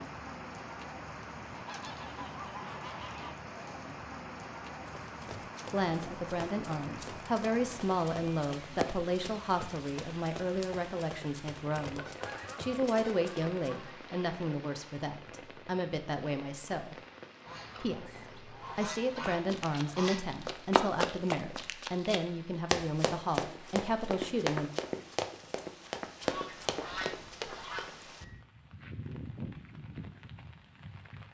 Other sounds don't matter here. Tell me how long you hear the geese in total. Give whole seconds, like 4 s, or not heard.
9 s.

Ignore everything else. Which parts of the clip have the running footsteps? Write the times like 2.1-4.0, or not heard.
4.8-13.6, 19.4-27.9.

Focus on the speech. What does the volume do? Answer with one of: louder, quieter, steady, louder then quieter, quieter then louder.
steady.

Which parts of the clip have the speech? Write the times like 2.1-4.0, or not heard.
5.7-16.9, 17.8-24.7.